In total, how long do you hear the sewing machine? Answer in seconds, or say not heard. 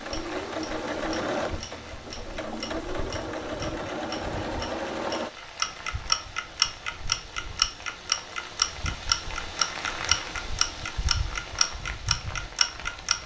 5 s.